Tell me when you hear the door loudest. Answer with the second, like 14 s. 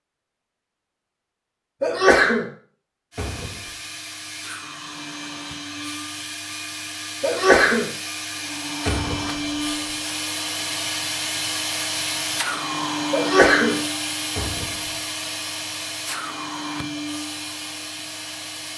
9 s.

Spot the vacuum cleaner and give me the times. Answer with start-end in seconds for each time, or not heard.
3.1-18.7.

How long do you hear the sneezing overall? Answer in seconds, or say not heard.
2 s.